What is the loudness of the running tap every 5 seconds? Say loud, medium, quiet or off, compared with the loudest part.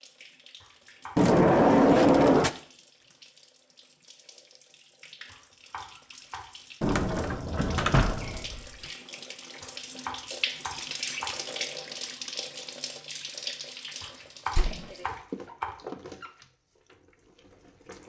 quiet, medium, loud, medium.